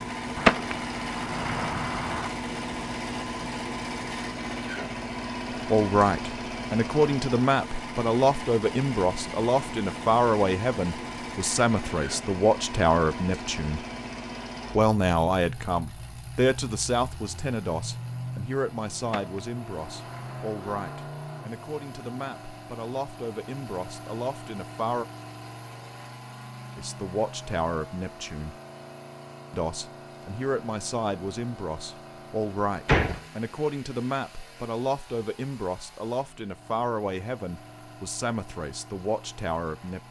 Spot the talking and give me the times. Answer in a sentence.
You can hear the talking from 5.7 to 13.8 s, from 14.8 to 25.1 s, from 26.8 to 28.6 s and from 29.5 to 40.0 s.